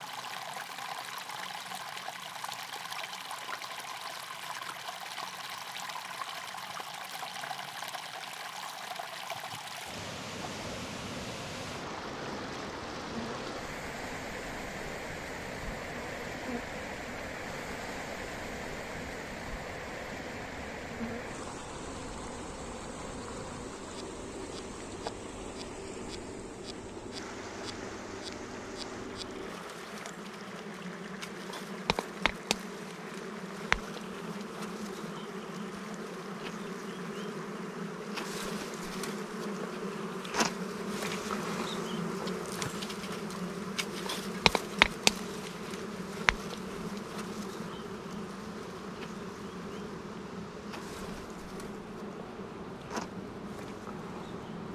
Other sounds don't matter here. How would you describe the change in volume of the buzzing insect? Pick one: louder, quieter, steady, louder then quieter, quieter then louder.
louder then quieter.